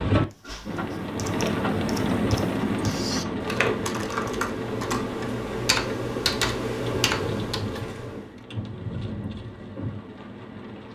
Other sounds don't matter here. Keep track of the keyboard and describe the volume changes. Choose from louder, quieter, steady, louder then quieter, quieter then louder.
louder.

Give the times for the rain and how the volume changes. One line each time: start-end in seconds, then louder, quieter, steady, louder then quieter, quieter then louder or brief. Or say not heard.
0.0-10.8 quieter.